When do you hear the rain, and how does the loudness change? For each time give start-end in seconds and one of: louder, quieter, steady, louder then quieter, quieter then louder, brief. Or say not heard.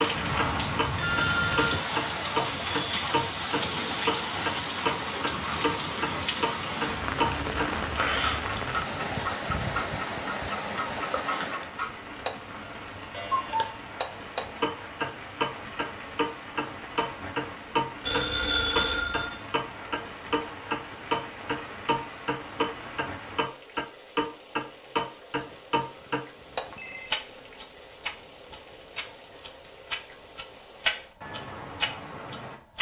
0.0-32.6 quieter.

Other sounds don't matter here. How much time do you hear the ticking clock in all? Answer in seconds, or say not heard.
33 s.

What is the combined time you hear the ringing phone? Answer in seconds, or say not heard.
5 s.